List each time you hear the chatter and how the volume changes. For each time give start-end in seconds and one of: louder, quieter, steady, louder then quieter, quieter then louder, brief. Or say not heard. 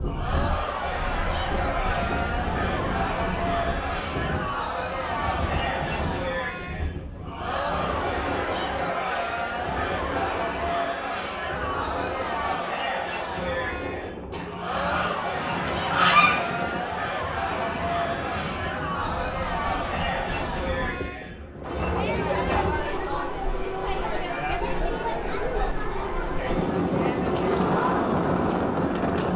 0.0-29.3 steady.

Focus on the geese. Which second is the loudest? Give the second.
16 s.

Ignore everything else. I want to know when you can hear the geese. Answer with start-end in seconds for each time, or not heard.
14.3-16.4.